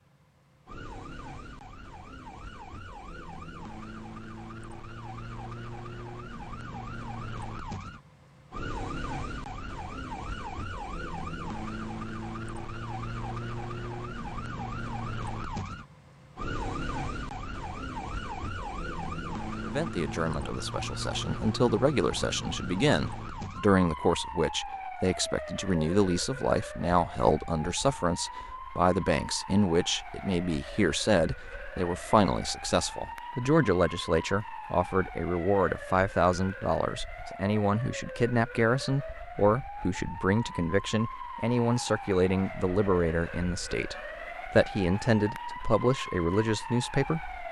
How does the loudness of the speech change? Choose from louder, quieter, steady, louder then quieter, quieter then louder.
steady.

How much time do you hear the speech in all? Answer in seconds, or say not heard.
28 s.